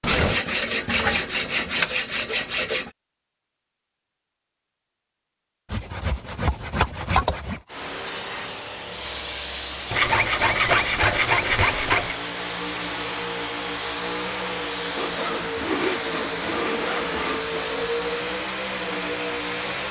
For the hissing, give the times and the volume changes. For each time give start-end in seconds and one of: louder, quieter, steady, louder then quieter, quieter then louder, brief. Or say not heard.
7.8-19.8 quieter.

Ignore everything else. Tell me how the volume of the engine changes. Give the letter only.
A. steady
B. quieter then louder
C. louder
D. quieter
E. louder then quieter
C.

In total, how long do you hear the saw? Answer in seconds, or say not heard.
10 s.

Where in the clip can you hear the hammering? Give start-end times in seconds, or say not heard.
not heard.